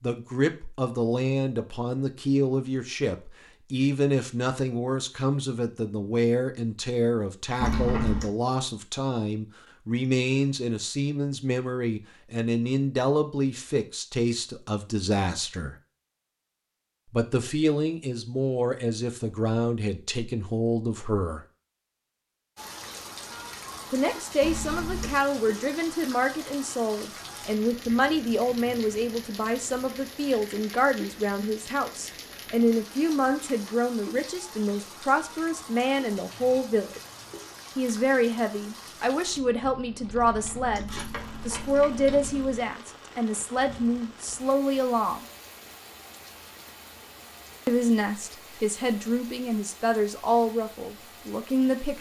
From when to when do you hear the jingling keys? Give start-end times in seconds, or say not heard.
7.6-8.3, 24.4-25.2, 40.1-42.6.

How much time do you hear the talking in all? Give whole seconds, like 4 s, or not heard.
45 s.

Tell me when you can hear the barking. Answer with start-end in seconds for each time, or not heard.
not heard.